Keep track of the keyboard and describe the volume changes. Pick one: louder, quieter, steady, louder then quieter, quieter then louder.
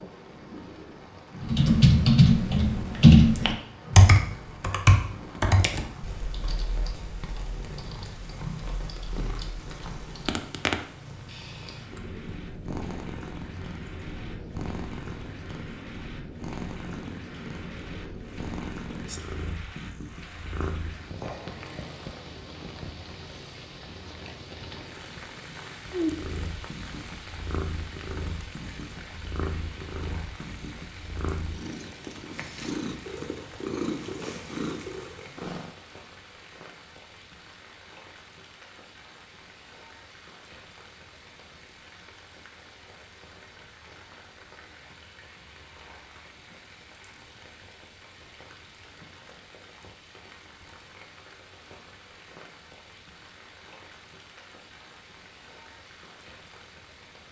quieter.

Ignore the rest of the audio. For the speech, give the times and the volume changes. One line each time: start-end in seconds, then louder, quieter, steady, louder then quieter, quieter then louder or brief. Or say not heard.
not heard.